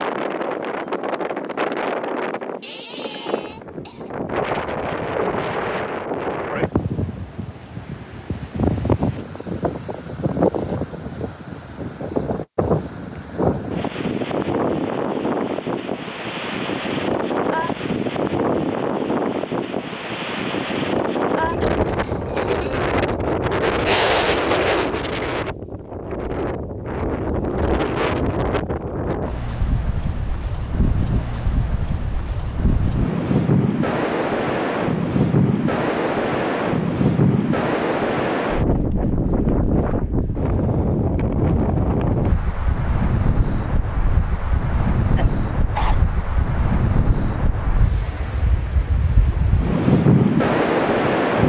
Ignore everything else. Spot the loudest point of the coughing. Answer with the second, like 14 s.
46 s.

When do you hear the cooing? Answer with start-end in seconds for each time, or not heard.
not heard.